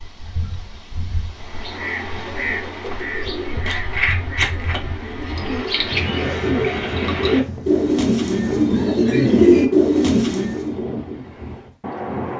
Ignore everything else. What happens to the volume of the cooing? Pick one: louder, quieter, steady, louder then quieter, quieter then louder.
louder.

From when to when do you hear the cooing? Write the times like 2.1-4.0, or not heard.
1.4-10.8.